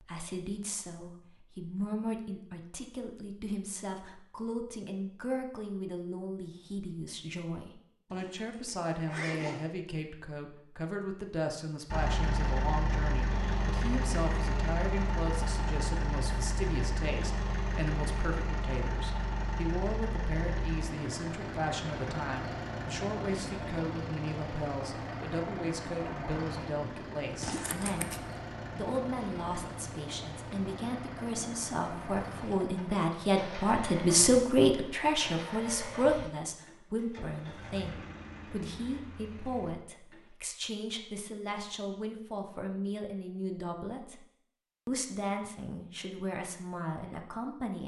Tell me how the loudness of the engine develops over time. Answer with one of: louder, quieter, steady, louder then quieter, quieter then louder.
quieter.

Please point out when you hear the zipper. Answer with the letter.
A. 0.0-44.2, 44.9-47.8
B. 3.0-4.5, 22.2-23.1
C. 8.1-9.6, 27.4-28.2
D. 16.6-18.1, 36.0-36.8
C.